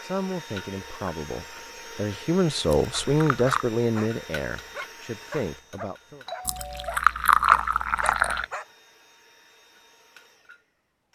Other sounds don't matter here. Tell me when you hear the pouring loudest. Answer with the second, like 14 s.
7 s.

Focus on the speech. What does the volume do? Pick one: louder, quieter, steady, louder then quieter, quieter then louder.
louder then quieter.